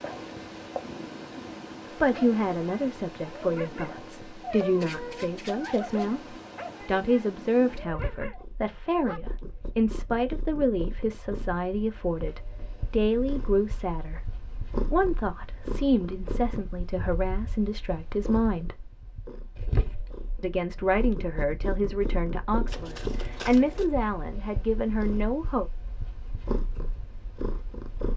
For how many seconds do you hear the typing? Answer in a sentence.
The typing can't be heard in this clip.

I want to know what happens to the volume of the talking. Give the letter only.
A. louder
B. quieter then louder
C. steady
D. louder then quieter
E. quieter
C.